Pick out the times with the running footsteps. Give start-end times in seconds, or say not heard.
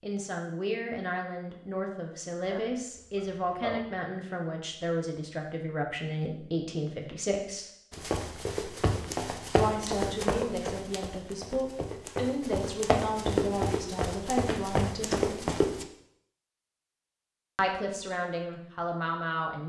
7.9-15.8.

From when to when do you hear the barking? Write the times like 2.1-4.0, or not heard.
2.5-4.0.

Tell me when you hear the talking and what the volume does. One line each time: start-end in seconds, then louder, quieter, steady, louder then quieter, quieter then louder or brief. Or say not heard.
0.0-7.7 steady
9.6-15.3 steady
17.6-19.6 brief.